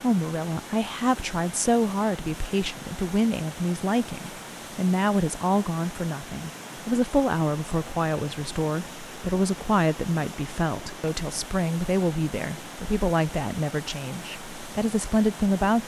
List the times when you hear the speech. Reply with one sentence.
You can hear the speech from 0.0 to 15.8 s.